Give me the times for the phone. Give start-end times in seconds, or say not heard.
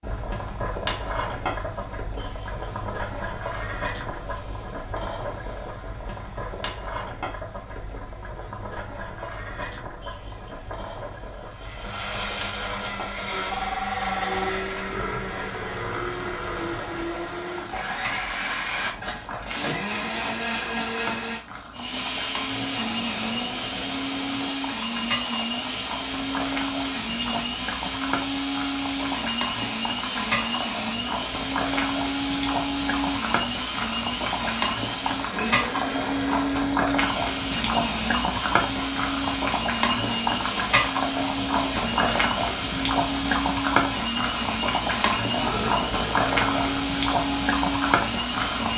13.5-14.5.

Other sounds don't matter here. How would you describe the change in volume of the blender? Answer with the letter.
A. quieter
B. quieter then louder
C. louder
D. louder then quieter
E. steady
C.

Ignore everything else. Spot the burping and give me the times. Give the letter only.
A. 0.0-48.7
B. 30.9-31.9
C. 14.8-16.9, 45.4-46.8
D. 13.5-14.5
C.